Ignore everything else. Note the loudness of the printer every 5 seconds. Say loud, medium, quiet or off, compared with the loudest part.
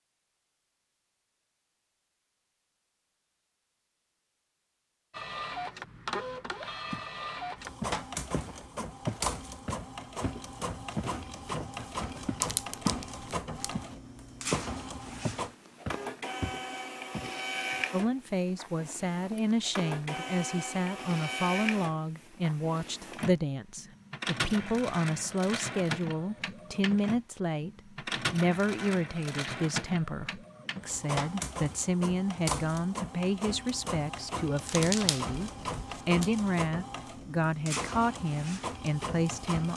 off, loud, loud, loud, loud, loud, loud, loud.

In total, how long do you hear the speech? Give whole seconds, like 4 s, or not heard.
22 s.